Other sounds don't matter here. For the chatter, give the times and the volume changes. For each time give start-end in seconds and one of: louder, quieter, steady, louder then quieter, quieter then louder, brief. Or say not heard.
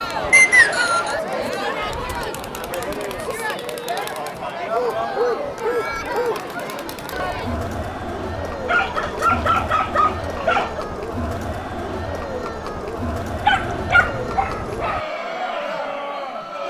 0.0-16.6 steady.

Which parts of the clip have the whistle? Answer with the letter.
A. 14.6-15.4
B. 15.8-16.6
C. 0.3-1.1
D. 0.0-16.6
C.